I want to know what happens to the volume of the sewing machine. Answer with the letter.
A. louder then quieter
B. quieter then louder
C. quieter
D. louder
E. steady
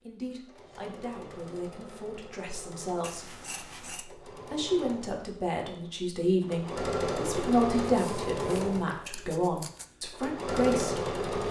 D.